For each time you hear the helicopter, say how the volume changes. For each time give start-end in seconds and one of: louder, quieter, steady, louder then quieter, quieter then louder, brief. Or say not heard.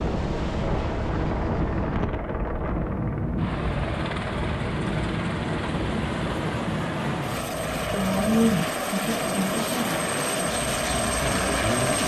0.0-12.0 louder.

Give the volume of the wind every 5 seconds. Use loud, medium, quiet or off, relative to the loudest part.
loud, loud, medium.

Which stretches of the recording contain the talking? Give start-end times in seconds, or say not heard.
7.8-12.0.